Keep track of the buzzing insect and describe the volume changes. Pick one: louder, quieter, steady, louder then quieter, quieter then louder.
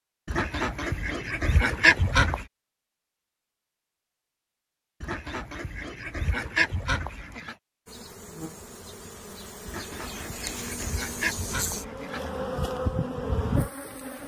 louder.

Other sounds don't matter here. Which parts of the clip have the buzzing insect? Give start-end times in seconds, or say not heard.
7.8-14.2.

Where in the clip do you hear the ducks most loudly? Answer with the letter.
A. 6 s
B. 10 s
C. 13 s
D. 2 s
D.